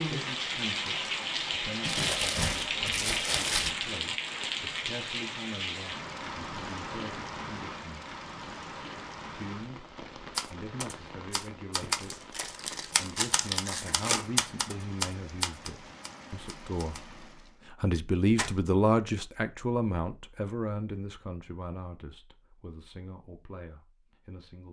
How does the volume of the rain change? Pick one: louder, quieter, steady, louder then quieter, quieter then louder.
quieter.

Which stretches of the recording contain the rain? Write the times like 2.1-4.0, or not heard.
0.0-17.6.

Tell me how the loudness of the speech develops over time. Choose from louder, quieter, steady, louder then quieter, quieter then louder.
louder then quieter.